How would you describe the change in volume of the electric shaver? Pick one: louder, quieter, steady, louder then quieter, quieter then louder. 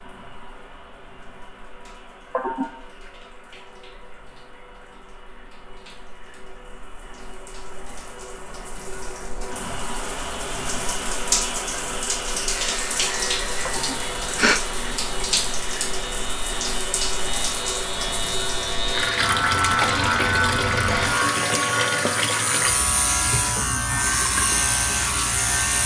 louder.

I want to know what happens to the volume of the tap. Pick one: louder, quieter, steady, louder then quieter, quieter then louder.
louder.